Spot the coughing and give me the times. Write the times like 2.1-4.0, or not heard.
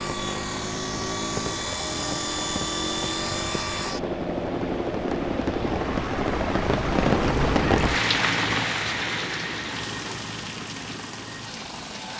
not heard.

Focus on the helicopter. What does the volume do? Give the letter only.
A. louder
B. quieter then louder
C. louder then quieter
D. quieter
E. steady
D.